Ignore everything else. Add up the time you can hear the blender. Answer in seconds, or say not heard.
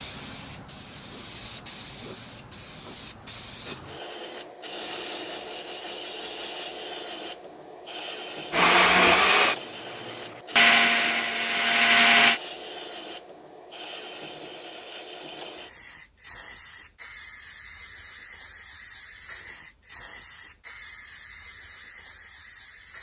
4 s.